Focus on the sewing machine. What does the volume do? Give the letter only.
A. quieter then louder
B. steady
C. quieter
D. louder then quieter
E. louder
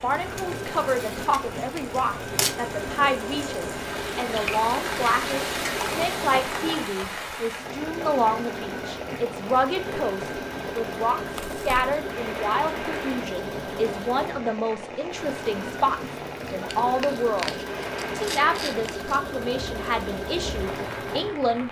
B.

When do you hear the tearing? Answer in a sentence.
The tearing can be heard from 0.3 to 2.5 s, from 11.3 to 11.8 s and from 16.4 to 19.2 s.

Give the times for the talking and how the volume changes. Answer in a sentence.
The talking can be heard from 0.0 to 21.6 s, at a steady volume.